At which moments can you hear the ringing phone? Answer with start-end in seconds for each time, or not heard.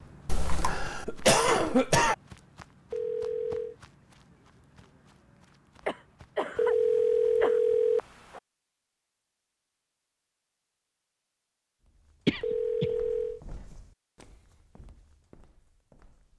2.9-3.8, 6.5-8.4, 12.4-13.4.